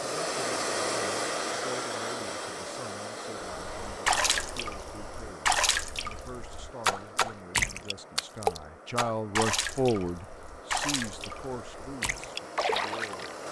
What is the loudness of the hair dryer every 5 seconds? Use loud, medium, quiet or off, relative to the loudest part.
loud, quiet, medium.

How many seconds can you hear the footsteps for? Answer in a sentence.
The footsteps can't be heard in this clip.